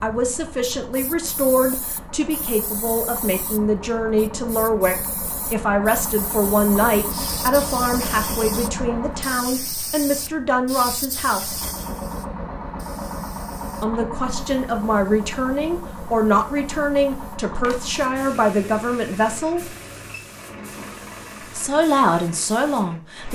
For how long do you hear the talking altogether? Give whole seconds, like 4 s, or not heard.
19 s.